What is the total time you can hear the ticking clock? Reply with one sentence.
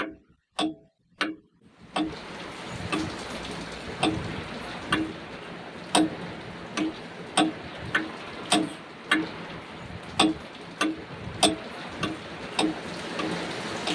The ticking clock can be heard for 14 seconds in total.